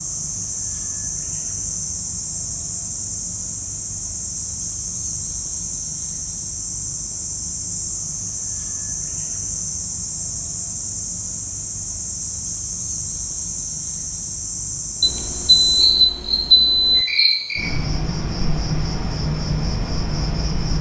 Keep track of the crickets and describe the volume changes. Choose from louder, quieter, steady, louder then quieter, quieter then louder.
steady.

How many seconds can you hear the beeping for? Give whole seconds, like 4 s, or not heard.
2 s.